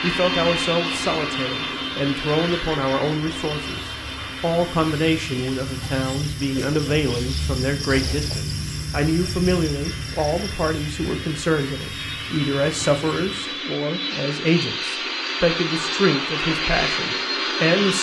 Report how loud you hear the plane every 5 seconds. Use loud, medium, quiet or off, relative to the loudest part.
loud, quiet, medium, loud.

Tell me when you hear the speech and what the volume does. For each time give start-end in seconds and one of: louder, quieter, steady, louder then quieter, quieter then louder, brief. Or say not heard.
0.0-17.9 steady.